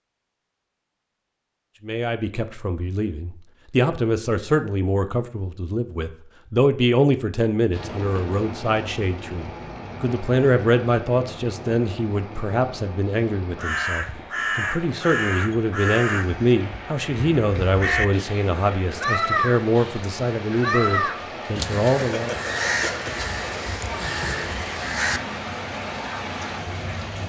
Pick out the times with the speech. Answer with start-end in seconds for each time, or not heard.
1.8-22.4.